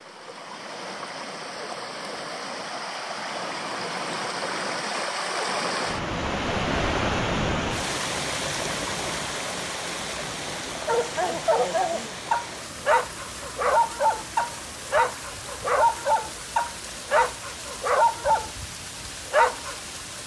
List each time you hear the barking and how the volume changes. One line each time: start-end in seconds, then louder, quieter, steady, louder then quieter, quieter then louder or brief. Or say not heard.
10.8-18.5 steady
19.3-19.8 brief.